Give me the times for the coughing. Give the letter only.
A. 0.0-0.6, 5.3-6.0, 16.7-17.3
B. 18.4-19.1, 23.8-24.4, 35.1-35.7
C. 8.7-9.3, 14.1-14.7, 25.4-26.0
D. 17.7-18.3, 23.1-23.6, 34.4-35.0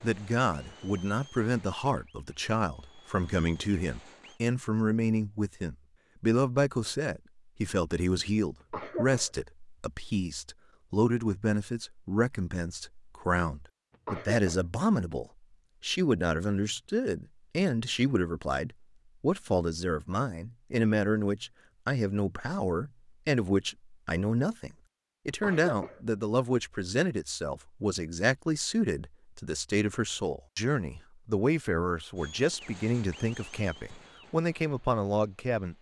C.